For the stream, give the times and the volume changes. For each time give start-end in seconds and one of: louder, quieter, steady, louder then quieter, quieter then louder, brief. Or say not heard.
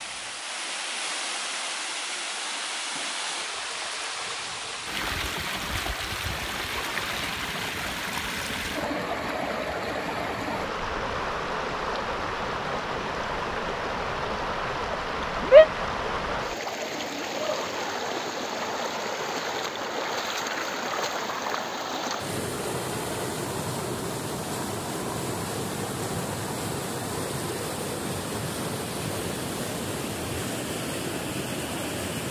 0.0-32.2 steady.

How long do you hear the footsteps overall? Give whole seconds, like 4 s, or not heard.
not heard.